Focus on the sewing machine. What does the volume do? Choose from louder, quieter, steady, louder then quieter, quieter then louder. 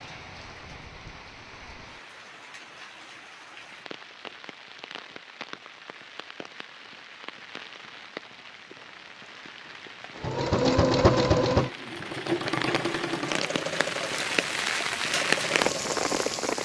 quieter.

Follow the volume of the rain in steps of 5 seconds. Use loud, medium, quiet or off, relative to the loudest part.
quiet, quiet, medium, loud.